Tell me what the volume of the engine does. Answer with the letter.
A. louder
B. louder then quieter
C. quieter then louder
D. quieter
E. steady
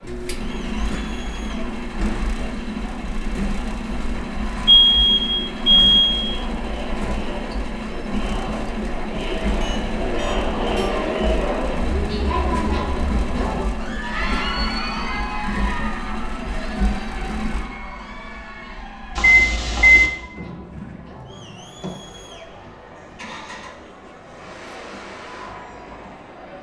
D.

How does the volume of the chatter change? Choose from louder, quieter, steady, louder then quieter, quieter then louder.
louder then quieter.